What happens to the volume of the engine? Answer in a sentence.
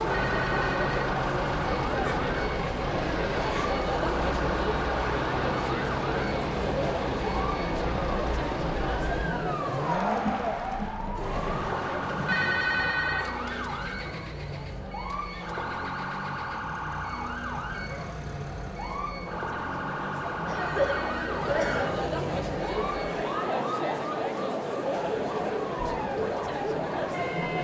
The loudness of the engine goes down.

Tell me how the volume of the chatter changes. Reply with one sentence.
The loudness of the chatter goes down, then up.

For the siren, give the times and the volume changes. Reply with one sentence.
The siren can be heard from 0.0 to 27.5 s, at a steady volume.